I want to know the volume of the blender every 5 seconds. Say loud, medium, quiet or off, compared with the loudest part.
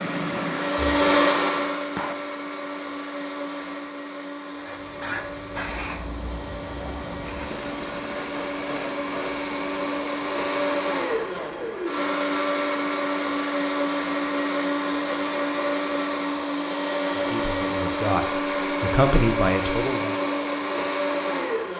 loud, medium, loud, loud, loud.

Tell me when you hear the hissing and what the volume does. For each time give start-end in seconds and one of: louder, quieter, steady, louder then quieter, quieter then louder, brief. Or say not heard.
0.0-2.1 brief
4.5-12.0 quieter.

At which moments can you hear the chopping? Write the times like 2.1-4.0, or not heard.
not heard.